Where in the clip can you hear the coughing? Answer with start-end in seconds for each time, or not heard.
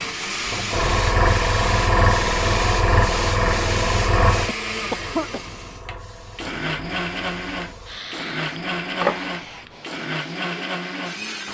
4.5-5.4.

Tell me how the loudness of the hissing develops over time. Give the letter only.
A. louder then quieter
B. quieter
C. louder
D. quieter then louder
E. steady
D.